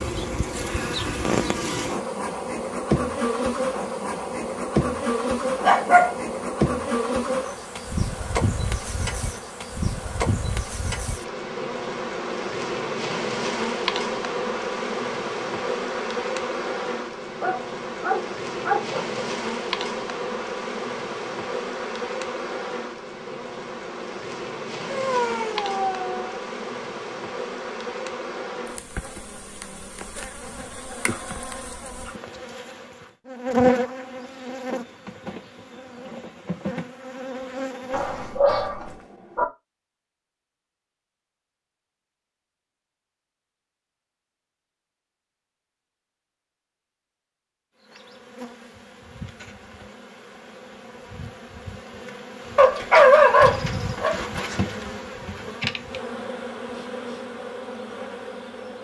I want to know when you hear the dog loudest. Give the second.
53 s.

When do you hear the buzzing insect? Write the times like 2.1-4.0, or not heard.
0.0-38.4, 47.8-58.7.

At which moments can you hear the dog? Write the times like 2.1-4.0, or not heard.
5.6-6.1, 17.4-19.2, 24.9-26.3, 37.9-39.5, 52.5-54.1.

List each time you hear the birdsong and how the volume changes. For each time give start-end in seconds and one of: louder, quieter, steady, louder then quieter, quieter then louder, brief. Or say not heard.
not heard.